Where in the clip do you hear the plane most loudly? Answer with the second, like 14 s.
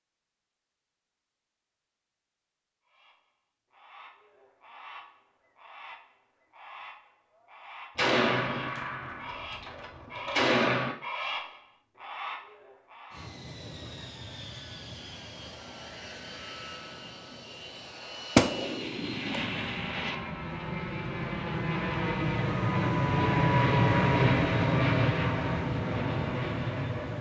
24 s.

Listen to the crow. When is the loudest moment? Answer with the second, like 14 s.
11 s.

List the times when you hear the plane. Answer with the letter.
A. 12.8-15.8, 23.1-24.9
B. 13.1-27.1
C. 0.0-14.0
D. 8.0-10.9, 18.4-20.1
B.